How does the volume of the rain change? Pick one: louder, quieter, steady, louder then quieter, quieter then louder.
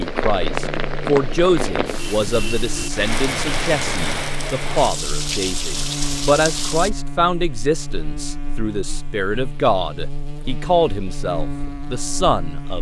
steady.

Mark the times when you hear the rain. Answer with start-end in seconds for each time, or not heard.
0.0-6.9.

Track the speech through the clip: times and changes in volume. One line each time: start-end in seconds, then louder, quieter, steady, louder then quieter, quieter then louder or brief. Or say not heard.
0.0-12.7 steady.